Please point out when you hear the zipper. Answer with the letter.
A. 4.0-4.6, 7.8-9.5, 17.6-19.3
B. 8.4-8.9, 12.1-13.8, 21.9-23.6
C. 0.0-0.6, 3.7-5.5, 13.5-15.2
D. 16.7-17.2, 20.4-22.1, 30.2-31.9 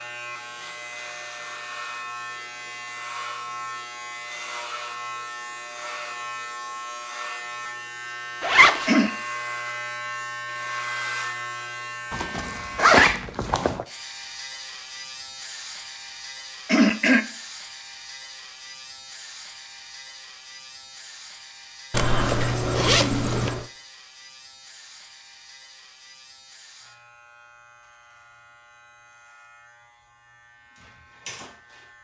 B.